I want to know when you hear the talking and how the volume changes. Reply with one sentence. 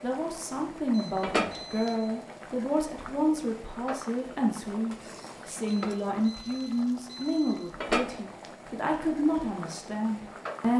The talking can be heard from 0.0 to 10.7 s, at a steady volume.